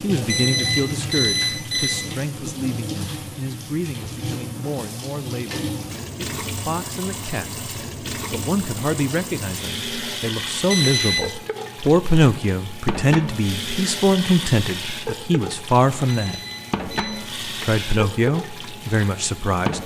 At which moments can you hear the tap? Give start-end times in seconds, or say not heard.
0.0-19.8.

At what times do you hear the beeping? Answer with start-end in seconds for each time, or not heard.
0.2-2.1, 10.7-11.3, 16.1-17.3.